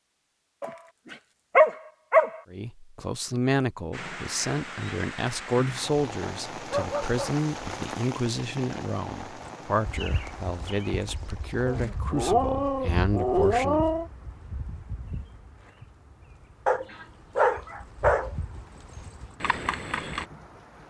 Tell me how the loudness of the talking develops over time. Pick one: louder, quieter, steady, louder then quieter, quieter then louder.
steady.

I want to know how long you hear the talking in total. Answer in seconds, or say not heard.
11 s.